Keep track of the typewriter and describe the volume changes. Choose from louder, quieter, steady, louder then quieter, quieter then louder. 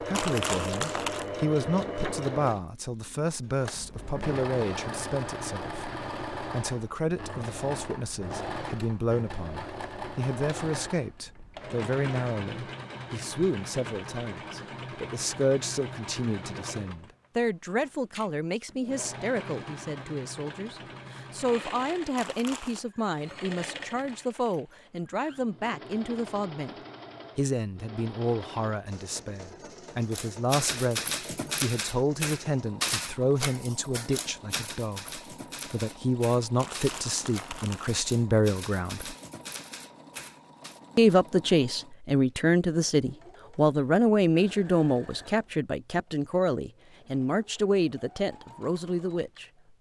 quieter.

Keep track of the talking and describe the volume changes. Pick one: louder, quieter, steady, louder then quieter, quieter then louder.
louder.